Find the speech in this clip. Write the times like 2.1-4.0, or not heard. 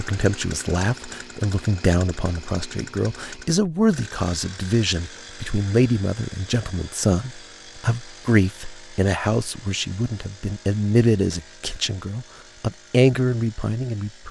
0.0-14.2.